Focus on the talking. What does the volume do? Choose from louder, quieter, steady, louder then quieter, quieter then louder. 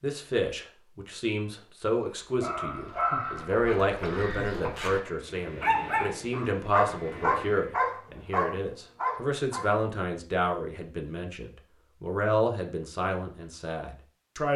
steady.